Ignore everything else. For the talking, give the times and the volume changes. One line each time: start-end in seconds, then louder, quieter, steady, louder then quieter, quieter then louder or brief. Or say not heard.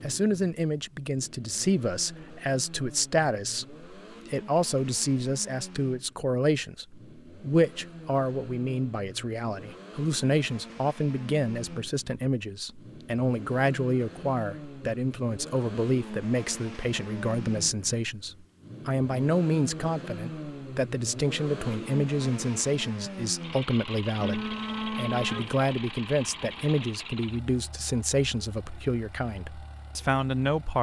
0.0-30.7 steady.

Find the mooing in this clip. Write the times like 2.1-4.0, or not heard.
24.2-25.8.